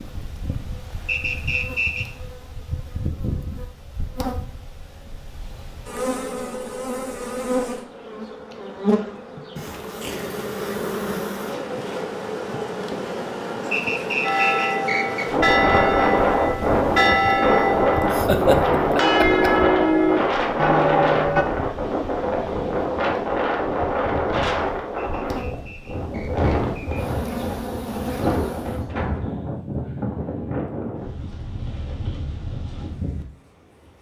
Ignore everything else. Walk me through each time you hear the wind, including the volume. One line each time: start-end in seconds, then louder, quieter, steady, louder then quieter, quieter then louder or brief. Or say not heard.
15.3-33.9 quieter.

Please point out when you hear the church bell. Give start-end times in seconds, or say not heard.
14.2-21.4.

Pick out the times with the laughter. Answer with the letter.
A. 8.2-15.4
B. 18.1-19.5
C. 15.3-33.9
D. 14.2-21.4
B.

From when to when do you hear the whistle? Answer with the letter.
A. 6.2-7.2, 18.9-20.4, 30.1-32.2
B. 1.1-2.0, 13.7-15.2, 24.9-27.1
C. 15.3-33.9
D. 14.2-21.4
B.